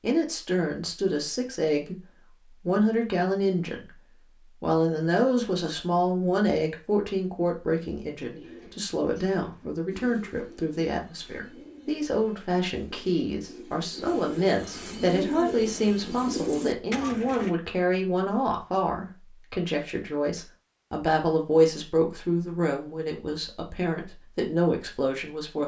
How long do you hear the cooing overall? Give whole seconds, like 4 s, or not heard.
9 s.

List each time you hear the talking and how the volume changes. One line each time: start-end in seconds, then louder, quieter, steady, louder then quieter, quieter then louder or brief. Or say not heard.
0.0-25.6 steady.